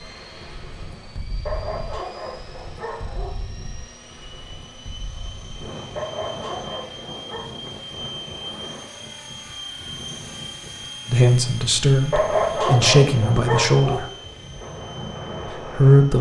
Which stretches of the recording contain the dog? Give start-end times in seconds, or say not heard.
1.4-3.4, 6.0-7.5, 12.1-14.1.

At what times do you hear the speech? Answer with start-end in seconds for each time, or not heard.
11.1-14.1, 15.5-16.1.